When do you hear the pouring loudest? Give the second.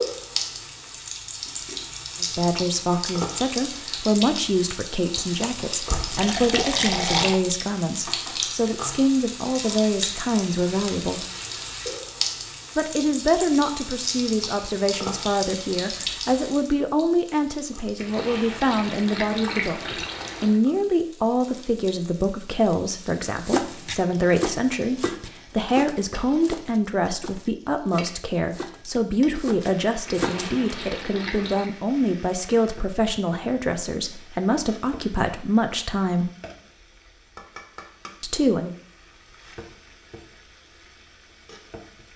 7 s.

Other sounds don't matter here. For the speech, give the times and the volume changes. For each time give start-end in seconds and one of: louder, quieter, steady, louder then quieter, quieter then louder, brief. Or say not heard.
2.2-11.2 steady
12.8-36.3 steady
38.2-38.8 brief.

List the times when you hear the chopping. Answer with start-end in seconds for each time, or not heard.
23.3-30.6.